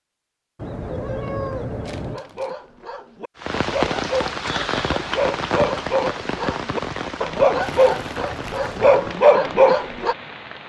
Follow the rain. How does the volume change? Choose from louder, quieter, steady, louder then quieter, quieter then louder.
quieter.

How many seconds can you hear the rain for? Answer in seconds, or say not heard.
7 s.